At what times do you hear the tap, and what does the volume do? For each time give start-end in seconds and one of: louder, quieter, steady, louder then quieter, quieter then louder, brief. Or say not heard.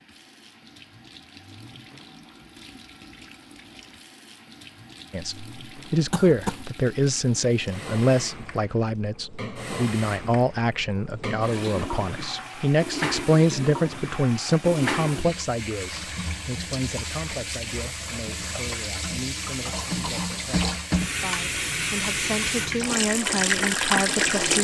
0.0-24.5 louder.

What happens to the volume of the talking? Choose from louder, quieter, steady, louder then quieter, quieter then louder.
quieter then louder.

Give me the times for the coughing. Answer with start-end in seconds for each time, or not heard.
6.1-6.7.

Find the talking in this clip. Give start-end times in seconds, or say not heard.
5.1-24.5.